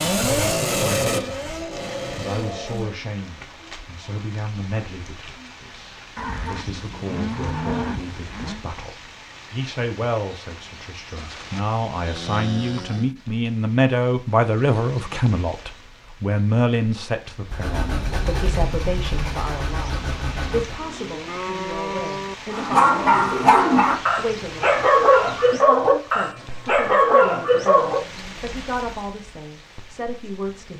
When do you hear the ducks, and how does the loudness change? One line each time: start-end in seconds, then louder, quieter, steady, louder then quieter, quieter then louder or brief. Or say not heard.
not heard.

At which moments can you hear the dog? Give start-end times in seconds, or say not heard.
22.5-28.0.